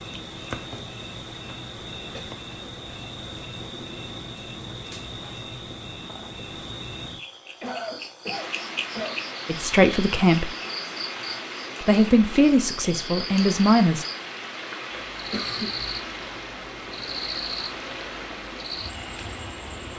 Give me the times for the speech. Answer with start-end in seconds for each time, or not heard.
9.4-10.6, 11.8-14.1.